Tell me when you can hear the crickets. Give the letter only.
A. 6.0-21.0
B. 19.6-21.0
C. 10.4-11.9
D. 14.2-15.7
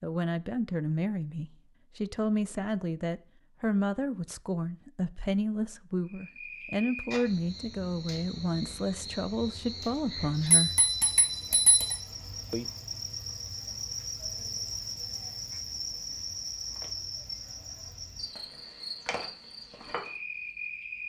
A.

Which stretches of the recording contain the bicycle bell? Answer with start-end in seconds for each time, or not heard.
10.4-11.9.